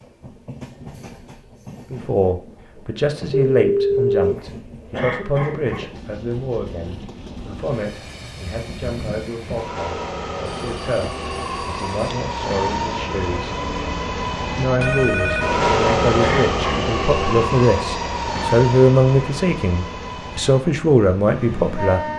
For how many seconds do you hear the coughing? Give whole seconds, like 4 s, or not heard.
2 s.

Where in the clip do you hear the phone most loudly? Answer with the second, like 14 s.
4 s.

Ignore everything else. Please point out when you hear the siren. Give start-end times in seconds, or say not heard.
not heard.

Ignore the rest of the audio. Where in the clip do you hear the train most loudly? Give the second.
16 s.